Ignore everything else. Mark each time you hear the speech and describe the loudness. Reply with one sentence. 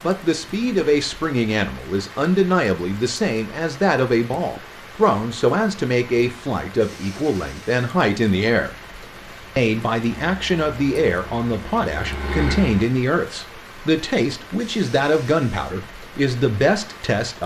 You can hear the speech from 0.0 to 8.7 s, at a steady volume; and from 9.6 to 17.4 s, at a steady volume.